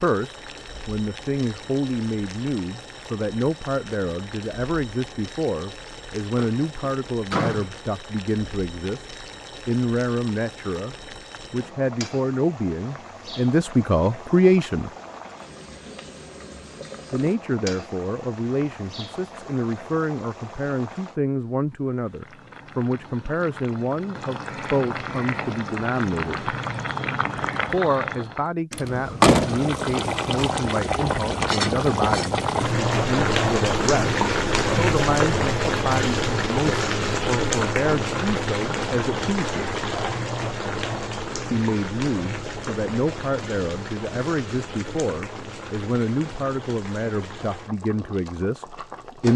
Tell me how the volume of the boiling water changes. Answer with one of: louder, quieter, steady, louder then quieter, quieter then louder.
louder then quieter.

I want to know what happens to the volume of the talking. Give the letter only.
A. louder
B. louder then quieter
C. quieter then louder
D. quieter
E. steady
E.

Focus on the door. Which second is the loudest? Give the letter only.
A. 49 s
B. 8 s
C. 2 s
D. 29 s
D.